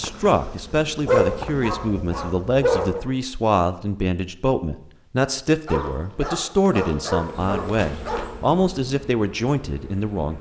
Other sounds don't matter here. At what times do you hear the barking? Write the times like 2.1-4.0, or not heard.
1.1-3.0, 5.7-8.2.